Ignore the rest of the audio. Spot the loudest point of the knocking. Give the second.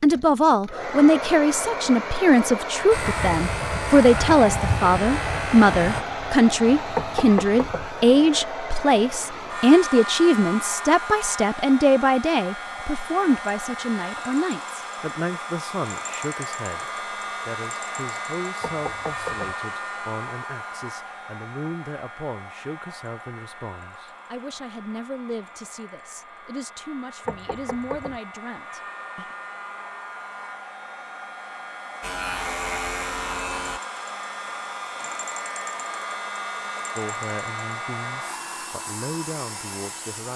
7 s.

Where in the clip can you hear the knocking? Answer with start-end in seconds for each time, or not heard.
6.9-7.9, 18.6-19.6, 27.2-28.2.